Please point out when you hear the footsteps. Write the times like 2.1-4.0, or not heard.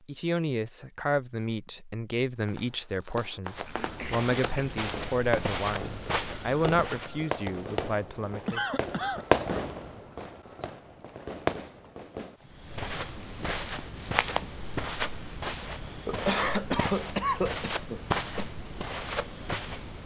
3.5-7.2, 12.4-20.0.